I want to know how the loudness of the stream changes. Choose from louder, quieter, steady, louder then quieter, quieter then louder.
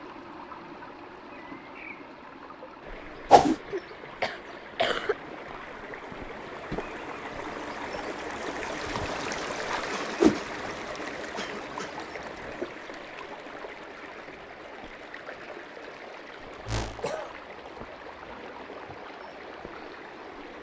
louder then quieter.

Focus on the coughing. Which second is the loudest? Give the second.
5 s.